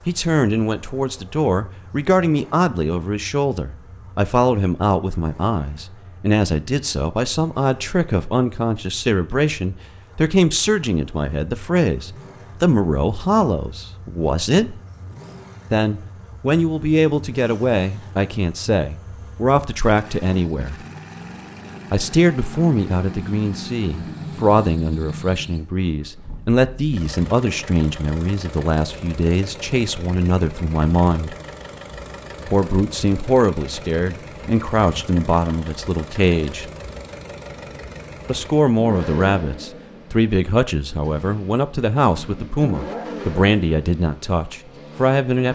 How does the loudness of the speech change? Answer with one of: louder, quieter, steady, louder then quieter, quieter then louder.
steady.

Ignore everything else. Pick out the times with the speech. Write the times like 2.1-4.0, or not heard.
0.1-14.8, 15.7-20.8, 21.9-31.4, 32.5-36.7, 38.2-45.5.